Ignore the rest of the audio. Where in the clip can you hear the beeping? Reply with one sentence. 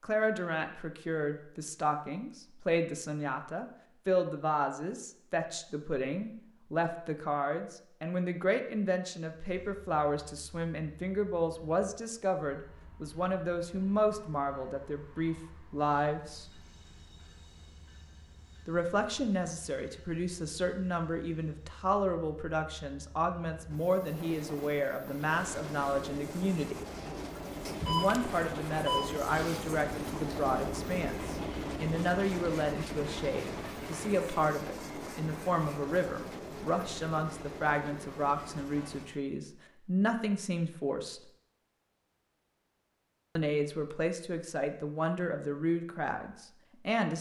You can hear the beeping from 27.6 to 29.6 s.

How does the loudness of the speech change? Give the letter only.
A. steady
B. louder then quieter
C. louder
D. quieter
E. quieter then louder
A.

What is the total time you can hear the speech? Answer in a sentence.
The speech can be heard for 42 seconds in total.